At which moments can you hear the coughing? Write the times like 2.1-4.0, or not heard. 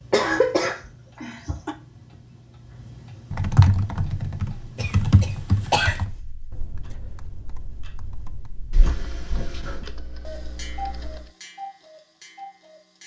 0.1-1.8, 4.8-6.0, 8.7-9.8.